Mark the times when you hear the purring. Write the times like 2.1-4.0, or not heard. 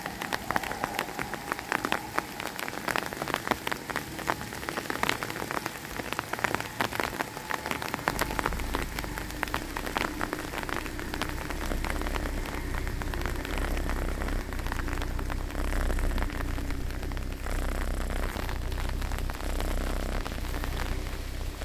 8.1-21.6.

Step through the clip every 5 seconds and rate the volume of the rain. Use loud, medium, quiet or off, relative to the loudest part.
loud, loud, loud, medium, medium.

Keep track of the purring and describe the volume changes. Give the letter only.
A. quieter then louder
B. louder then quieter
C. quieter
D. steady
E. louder
E.